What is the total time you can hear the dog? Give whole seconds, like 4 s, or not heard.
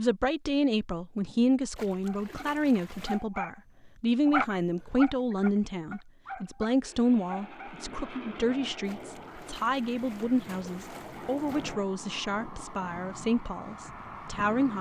6 s.